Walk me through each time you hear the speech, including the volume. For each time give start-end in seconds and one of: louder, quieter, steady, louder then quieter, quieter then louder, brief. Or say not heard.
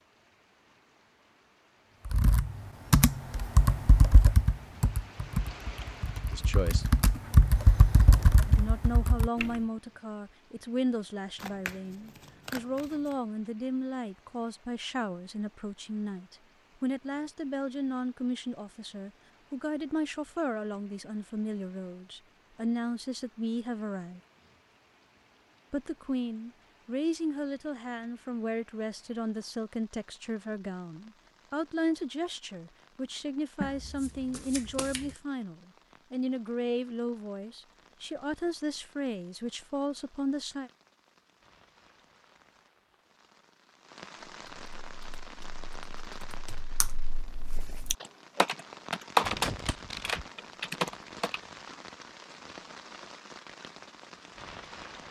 6.3-6.9 brief
8.4-24.2 steady
25.7-40.7 steady.